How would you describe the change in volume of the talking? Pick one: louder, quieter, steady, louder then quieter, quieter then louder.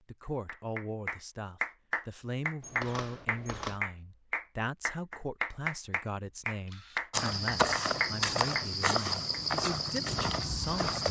steady.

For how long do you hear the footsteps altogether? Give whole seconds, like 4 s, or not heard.
4 s.